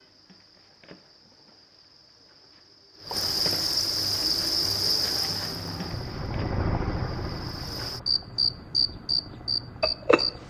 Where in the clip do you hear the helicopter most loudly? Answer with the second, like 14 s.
7 s.